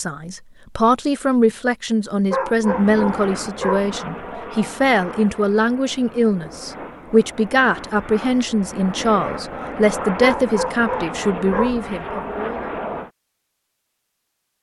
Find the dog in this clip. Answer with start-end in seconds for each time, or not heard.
2.3-3.9, 10.2-11.8.